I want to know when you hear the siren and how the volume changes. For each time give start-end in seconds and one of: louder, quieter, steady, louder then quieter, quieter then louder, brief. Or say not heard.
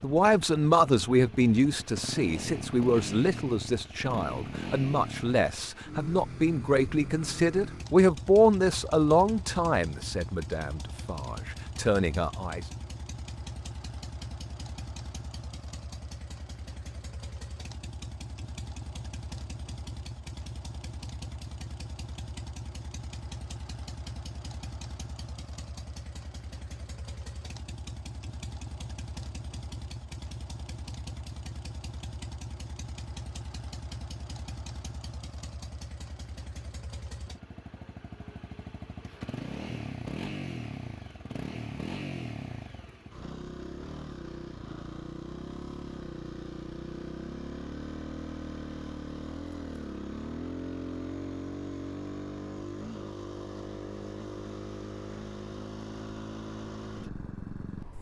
not heard.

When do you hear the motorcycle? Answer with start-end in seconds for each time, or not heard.
0.0-57.9.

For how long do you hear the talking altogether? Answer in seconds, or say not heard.
13 s.